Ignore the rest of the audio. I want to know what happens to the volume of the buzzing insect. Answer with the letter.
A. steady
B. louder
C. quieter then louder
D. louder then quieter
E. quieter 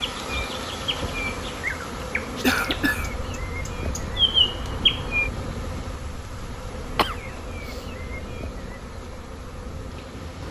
E.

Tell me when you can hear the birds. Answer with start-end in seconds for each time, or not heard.
0.0-5.3.